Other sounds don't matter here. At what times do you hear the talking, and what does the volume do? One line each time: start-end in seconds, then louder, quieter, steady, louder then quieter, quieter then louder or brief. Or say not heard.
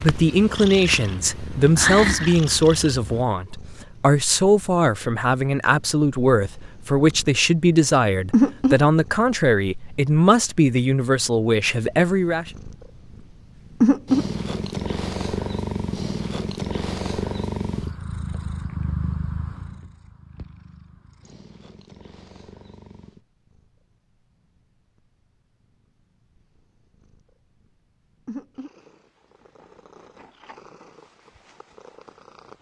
0.0-12.5 steady.